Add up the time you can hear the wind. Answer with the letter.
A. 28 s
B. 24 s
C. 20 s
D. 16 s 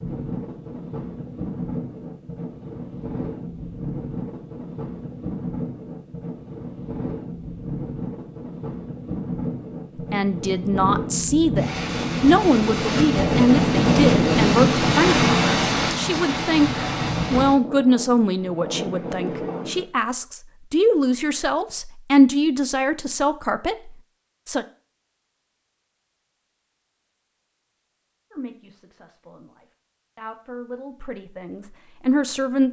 C.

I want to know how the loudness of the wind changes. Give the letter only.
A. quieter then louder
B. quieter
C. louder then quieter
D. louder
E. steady
C.